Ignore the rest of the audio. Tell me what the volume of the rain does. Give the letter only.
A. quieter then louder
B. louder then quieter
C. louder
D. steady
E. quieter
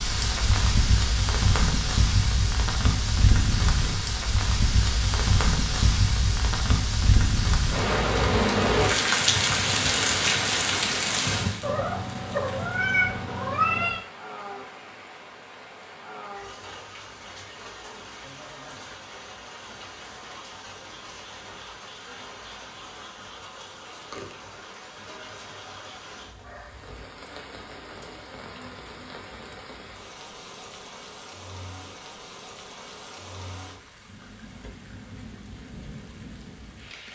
E.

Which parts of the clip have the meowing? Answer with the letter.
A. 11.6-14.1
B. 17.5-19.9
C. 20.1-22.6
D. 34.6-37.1
A.